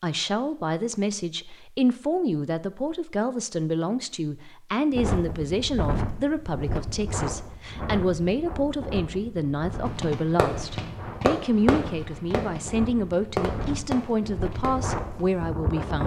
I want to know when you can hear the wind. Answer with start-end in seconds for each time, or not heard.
4.9-16.0.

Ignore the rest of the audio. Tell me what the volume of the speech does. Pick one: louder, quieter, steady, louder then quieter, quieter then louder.
steady.